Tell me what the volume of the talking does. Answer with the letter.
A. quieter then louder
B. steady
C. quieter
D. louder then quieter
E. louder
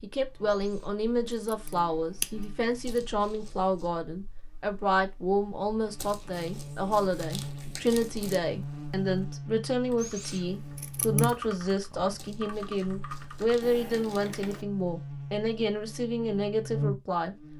B.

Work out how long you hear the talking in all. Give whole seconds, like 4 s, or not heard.
17 s.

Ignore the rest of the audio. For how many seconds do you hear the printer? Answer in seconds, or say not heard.
not heard.